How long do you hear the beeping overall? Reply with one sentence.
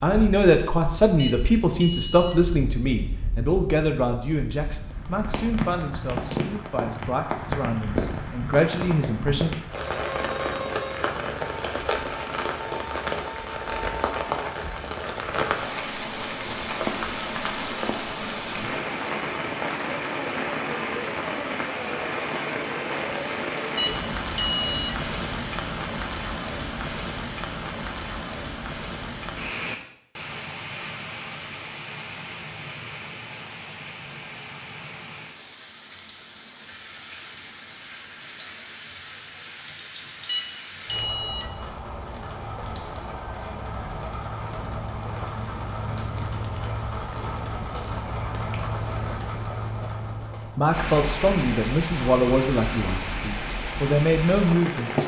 The beeping can be heard for 4 seconds in total.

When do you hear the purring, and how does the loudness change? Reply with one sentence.
You can't hear the purring here.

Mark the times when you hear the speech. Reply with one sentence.
The speech can be heard from 0.0 to 9.6 s and from 50.5 to 55.0 s.